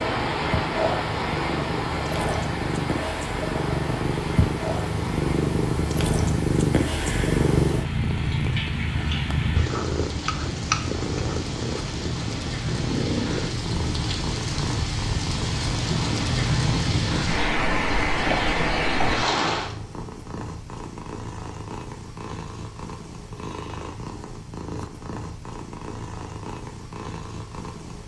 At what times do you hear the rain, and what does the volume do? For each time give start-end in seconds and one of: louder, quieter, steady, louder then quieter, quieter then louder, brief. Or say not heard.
0.0-19.8 quieter then louder.